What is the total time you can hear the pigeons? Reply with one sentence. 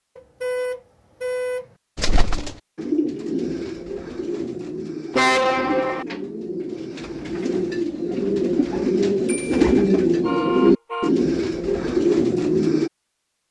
The pigeons can be heard for 11 seconds in total.